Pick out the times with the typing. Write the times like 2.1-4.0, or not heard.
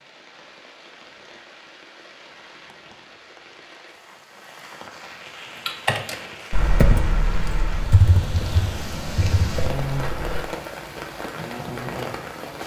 5.7-10.4.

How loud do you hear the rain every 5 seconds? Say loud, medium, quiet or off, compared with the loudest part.
quiet, loud, loud.